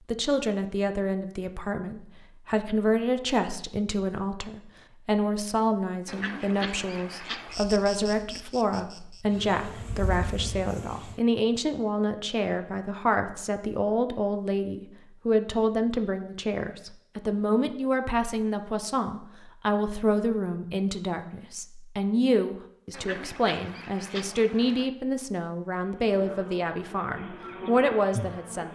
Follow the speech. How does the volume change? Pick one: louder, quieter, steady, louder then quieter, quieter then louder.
steady.